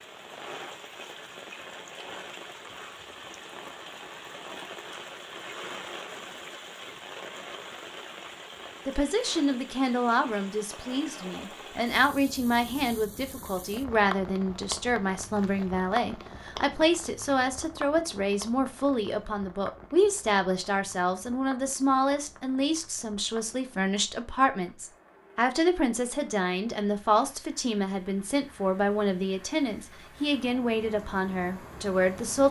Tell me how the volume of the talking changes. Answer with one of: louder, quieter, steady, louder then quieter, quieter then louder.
steady.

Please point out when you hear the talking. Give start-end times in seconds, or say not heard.
8.8-32.4.